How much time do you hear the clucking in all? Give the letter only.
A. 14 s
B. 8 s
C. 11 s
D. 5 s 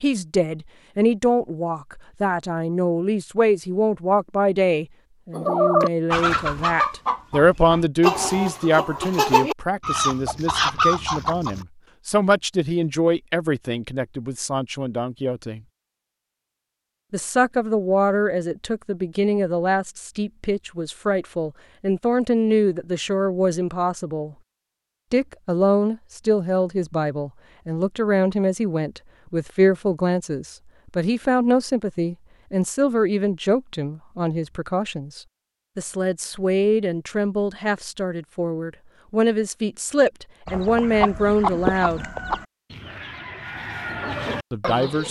C.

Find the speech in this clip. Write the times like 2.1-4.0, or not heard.
0.0-15.6, 17.1-24.4, 25.1-42.0, 44.5-45.0.